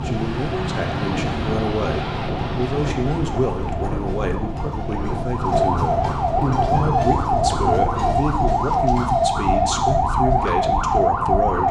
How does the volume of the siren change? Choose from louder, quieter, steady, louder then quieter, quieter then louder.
louder.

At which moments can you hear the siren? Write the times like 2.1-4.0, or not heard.
0.0-11.6.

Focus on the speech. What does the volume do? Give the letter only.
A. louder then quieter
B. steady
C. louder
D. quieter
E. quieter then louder
B.